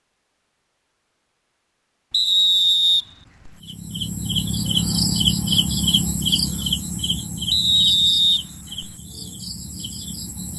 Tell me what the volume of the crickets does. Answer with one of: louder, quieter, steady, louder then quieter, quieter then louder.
quieter.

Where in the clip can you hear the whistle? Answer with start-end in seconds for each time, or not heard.
2.1-3.5, 7.5-8.9.